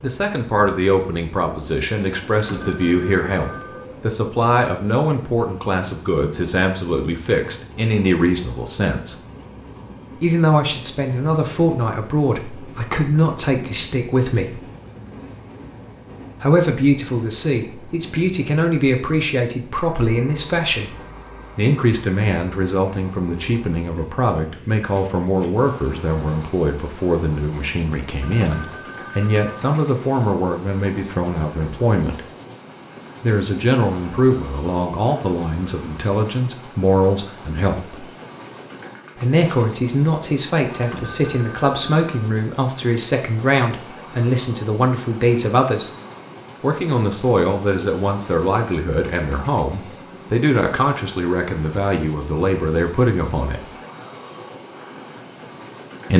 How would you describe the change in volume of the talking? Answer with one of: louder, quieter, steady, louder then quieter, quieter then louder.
steady.